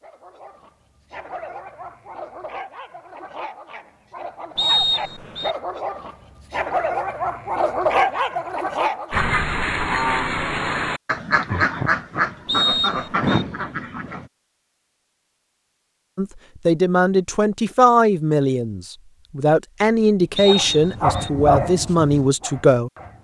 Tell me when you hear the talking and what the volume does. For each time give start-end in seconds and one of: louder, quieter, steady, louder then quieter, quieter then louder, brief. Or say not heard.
16.1-22.9 steady.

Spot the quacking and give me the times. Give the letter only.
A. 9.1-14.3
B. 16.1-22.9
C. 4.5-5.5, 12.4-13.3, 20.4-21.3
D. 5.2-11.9
A.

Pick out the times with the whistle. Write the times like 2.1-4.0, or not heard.
4.5-5.5, 12.4-13.3, 20.4-21.3.